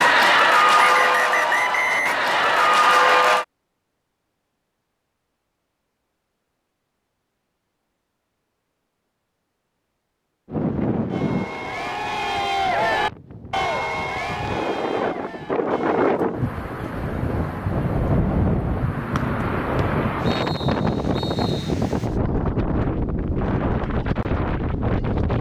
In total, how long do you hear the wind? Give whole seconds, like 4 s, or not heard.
15 s.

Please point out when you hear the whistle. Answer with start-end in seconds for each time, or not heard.
0.8-2.8, 19.1-21.7.